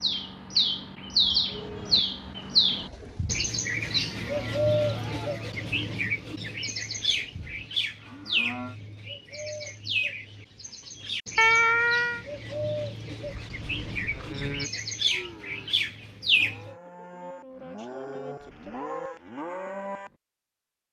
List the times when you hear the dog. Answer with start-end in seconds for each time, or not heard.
not heard.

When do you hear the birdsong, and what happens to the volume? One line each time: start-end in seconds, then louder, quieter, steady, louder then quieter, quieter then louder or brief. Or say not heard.
0.0-16.7 quieter.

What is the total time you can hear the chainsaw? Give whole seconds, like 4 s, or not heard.
not heard.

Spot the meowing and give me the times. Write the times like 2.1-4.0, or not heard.
11.3-12.2.